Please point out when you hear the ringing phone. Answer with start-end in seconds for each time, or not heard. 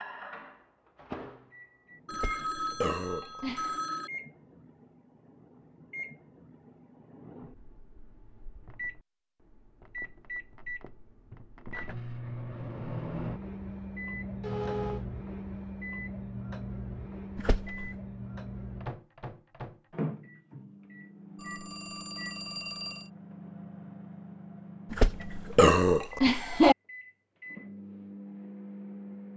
2.0-4.1, 14.4-15.1, 21.4-23.1.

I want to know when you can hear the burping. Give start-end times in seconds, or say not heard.
2.1-3.9, 17.4-17.9, 24.9-26.8.